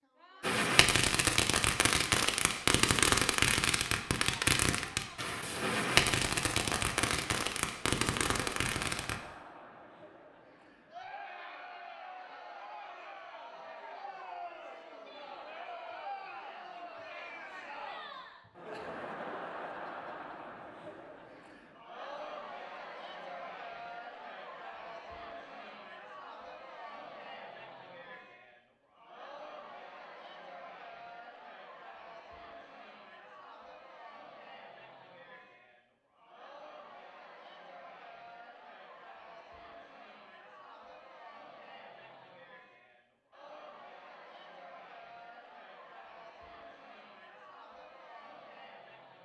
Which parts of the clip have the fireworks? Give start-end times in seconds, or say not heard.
0.4-9.2.